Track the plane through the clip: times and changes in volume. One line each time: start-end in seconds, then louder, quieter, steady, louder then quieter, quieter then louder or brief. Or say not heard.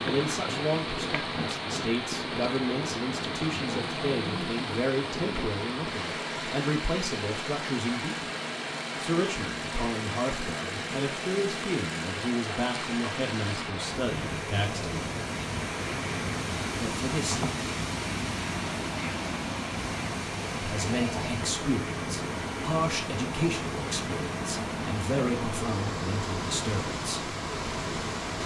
0.0-28.4 steady.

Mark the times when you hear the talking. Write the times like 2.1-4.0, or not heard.
0.0-8.3, 9.0-15.1, 16.8-17.7, 20.6-27.4.